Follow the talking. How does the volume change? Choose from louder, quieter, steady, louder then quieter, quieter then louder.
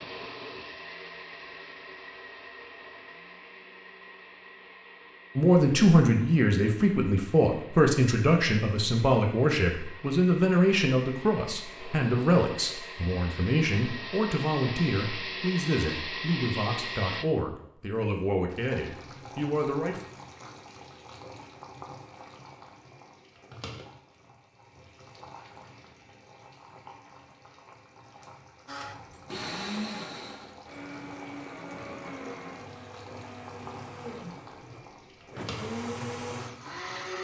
quieter.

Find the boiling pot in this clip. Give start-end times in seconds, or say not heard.
18.4-37.1.